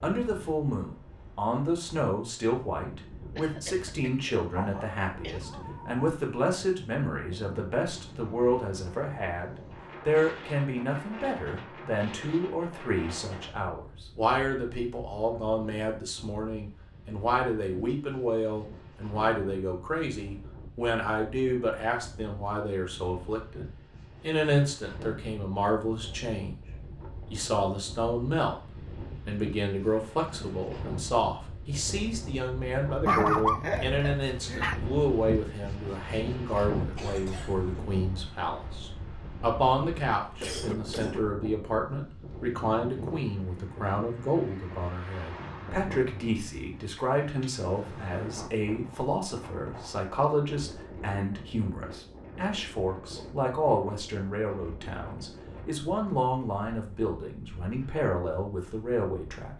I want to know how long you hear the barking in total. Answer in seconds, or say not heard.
3 s.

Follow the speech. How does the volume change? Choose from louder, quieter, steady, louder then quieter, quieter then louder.
steady.